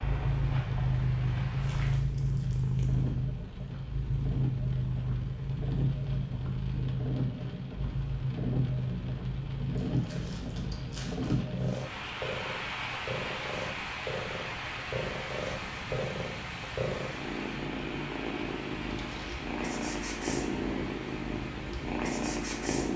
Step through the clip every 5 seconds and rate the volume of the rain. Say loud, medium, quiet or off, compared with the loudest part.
medium, loud, loud, medium, medium.